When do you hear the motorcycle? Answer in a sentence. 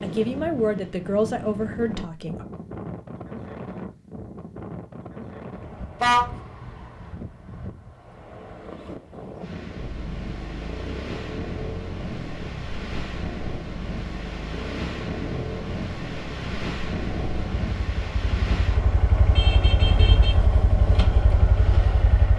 The motorcycle can be heard from 9.8 to 22.3 s.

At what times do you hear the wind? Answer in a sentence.
You can hear the wind from 0.0 to 22.3 s.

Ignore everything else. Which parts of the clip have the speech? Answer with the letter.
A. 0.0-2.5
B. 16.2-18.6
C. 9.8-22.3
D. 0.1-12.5
A.